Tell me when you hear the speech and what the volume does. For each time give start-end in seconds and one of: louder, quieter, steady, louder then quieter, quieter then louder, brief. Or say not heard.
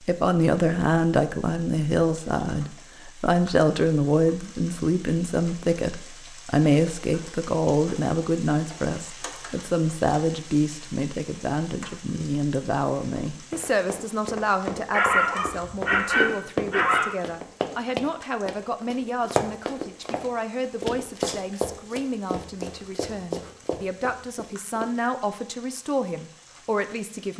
0.0-27.3 quieter.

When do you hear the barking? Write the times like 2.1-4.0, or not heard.
14.9-17.1.